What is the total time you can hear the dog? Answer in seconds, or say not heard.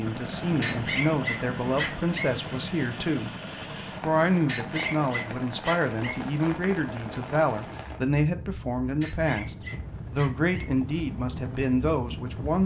5 s.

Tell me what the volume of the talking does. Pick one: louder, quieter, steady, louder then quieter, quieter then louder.
steady.